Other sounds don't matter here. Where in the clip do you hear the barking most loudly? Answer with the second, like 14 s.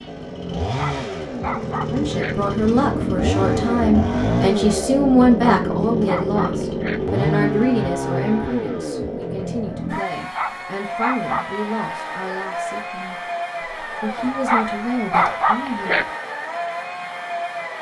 15 s.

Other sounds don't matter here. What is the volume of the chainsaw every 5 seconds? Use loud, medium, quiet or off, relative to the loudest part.
loud, loud, medium, medium.